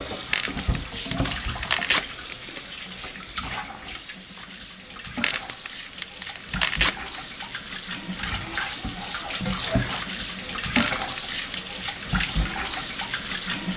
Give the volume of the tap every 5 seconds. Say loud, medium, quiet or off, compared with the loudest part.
medium, loud, loud.